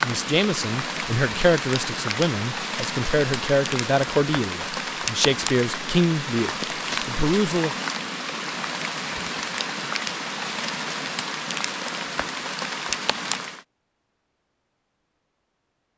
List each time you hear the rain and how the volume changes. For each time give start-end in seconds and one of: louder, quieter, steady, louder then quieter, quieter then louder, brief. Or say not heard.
0.0-13.7 steady.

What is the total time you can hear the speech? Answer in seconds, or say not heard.
8 s.